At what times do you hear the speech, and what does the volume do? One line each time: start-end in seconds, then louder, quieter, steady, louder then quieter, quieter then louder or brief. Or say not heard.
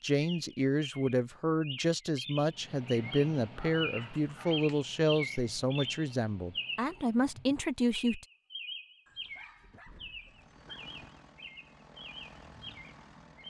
0.0-8.2 steady.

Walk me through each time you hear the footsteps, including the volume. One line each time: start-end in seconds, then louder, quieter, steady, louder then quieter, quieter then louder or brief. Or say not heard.
not heard.